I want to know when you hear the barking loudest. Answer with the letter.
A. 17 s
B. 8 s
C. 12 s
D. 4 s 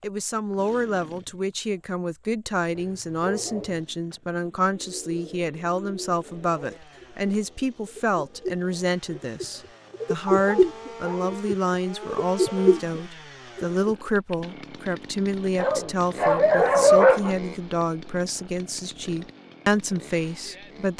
A.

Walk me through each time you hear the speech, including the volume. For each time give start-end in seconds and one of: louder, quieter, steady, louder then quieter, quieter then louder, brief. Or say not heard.
0.0-20.9 steady.